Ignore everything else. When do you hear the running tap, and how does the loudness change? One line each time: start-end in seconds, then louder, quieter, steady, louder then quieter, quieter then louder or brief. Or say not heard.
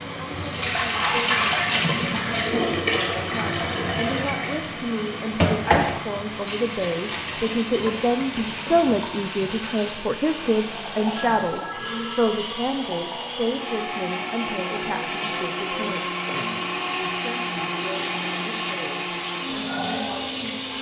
0.0-20.7 quieter then louder.